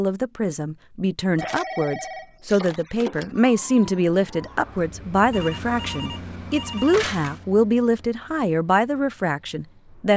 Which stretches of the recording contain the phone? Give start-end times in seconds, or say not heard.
1.4-3.4, 5.3-7.4.